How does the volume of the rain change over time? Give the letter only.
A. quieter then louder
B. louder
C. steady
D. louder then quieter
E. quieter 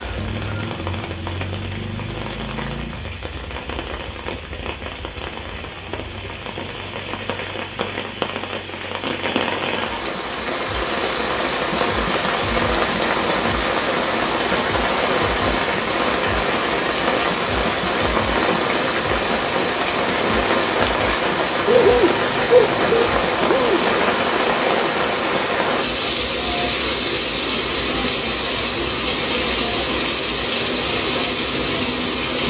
B.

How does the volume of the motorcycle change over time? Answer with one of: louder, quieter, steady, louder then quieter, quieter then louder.
quieter.